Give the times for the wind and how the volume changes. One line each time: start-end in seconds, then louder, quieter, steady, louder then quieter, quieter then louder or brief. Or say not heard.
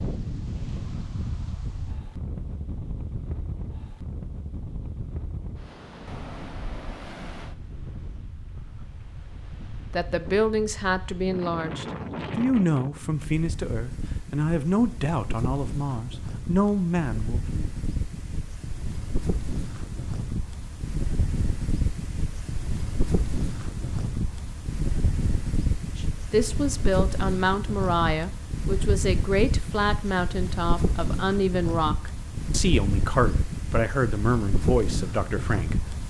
0.0-36.0 louder.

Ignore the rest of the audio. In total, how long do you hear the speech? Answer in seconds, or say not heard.
18 s.